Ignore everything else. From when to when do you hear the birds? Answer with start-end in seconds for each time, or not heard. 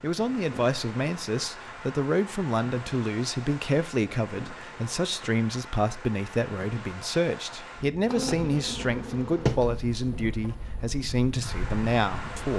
not heard.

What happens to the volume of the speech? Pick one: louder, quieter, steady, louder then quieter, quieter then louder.
steady.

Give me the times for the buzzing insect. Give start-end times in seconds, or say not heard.
8.1-12.3.